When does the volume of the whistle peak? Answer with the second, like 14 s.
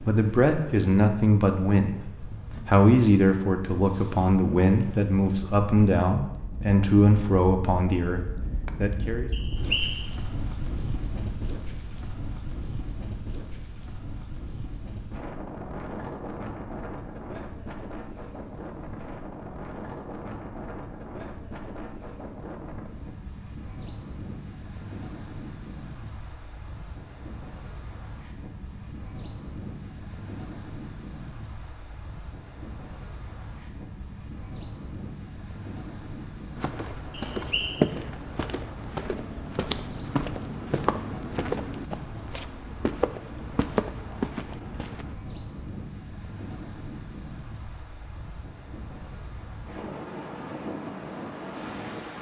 10 s.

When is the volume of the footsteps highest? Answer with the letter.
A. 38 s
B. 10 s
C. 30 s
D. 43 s
A.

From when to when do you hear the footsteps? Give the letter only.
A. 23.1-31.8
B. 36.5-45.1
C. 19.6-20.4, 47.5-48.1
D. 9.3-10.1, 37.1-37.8
B.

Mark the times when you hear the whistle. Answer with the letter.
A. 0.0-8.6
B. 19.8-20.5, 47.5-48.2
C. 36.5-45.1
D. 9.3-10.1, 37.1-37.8
D.